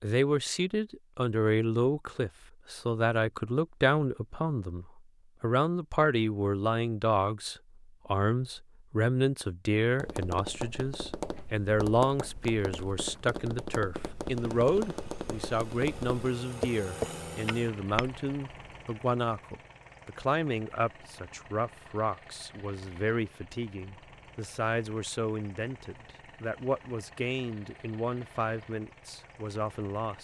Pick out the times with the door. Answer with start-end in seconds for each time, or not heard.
not heard.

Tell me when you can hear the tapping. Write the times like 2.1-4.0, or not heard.
9.9-18.2.